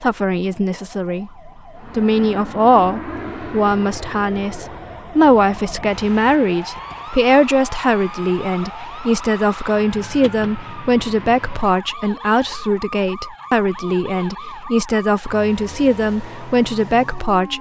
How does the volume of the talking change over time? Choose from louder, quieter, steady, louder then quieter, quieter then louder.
steady.